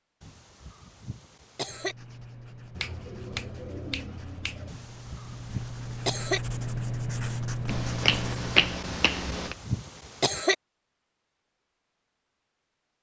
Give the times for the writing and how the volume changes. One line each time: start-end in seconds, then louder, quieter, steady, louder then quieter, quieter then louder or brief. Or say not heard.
1.6-8.8 louder.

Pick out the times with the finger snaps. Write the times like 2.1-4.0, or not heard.
2.8-4.8, 7.7-9.6.